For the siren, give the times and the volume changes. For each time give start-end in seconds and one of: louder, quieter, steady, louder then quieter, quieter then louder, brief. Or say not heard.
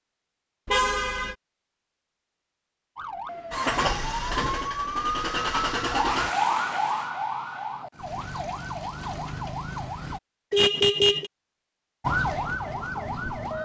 3.0-10.2 louder then quieter
12.0-13.5 brief.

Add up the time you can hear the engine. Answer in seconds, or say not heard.
3 s.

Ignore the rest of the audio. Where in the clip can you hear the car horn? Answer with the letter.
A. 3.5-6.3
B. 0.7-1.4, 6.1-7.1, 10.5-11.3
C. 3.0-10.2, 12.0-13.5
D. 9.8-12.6
B.